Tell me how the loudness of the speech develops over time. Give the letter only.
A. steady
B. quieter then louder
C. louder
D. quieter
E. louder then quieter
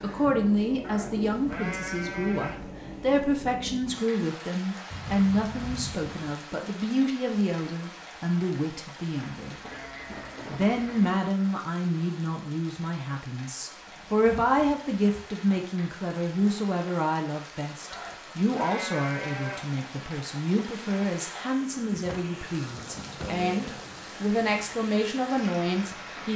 A.